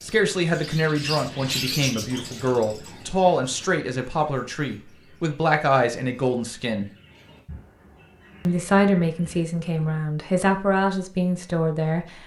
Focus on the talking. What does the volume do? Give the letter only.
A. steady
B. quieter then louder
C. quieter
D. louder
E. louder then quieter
A.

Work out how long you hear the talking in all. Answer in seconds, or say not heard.
11 s.